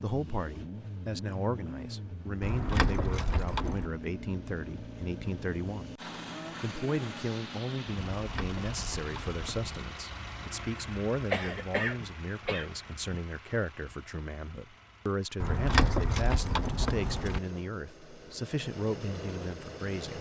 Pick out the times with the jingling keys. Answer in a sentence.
You can hear the jingling keys from 2.4 to 3.9 s, from 8.2 to 9.8 s and from 15.4 to 17.4 s.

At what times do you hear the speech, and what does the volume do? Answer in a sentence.
You can hear the speech from 0.0 to 20.1 s, at a steady volume.